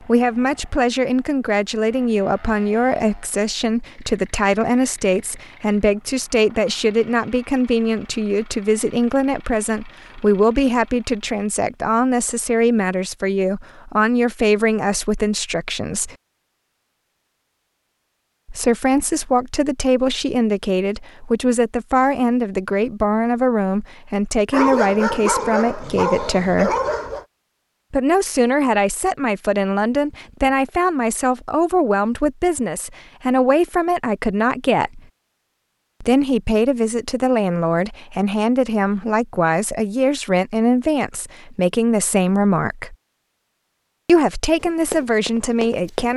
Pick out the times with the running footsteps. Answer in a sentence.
The running footsteps can be heard from 44.6 to 46.1 s.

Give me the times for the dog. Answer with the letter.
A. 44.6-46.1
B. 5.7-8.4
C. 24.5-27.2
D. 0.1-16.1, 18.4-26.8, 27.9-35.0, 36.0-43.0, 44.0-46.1
C.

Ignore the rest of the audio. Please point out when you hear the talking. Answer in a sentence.
The talking can be heard from 0.1 to 16.1 s, from 18.4 to 26.8 s, from 27.9 to 35.0 s, from 36.0 to 43.0 s and from 44.0 to 46.1 s.